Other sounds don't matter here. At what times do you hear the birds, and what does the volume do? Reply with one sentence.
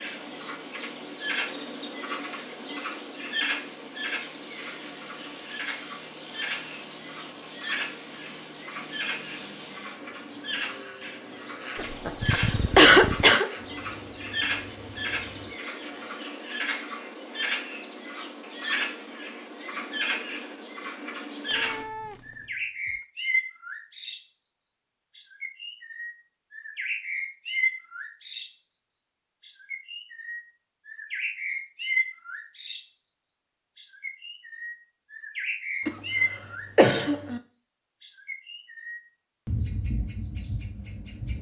The birds can be heard from 0.0 to 41.3 s, at a steady volume.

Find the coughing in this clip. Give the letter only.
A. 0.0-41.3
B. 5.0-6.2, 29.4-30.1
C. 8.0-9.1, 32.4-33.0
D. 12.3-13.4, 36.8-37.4
D.